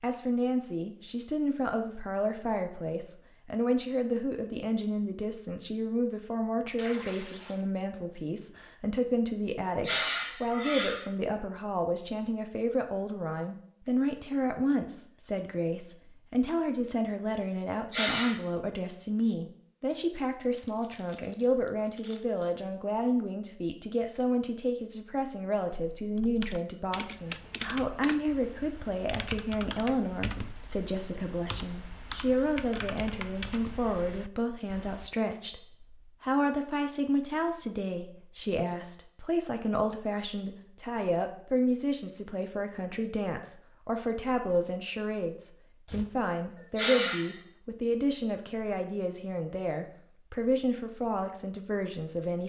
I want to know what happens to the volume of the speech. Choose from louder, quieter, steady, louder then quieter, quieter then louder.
steady.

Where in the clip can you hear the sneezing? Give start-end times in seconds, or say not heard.
9.7-11.1, 17.8-18.4, 46.6-47.4.